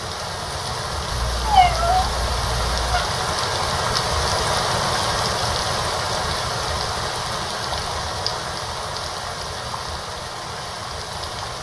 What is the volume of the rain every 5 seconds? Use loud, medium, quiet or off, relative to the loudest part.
loud, loud, medium.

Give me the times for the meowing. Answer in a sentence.
The meowing can be heard from 1.1 to 3.0 s.